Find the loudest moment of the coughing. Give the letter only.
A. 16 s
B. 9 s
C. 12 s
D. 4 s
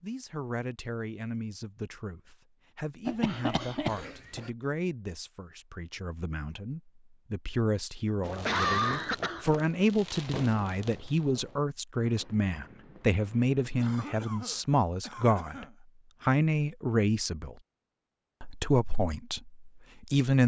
B.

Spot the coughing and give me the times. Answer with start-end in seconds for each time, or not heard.
3.0-4.4, 8.3-9.4, 13.8-15.8.